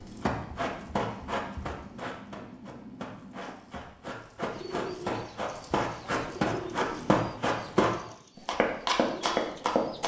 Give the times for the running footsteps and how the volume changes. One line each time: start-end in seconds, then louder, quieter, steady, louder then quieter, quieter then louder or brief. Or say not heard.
0.0-10.0 quieter then louder.